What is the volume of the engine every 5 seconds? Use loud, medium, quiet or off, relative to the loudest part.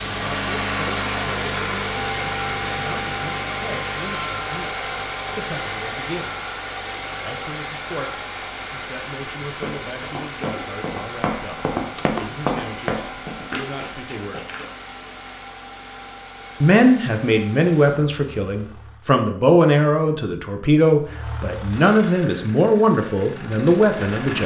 loud, medium, medium, quiet, medium.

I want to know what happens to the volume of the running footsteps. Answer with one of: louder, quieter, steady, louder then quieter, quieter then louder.
louder then quieter.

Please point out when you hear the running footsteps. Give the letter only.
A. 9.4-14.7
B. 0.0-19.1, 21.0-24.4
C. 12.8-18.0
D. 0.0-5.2
A.